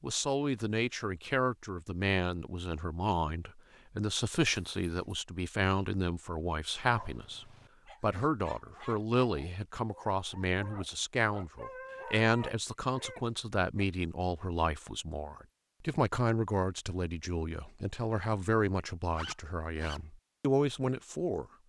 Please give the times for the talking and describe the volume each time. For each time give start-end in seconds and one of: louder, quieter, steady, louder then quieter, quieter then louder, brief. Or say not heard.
0.0-21.4 steady.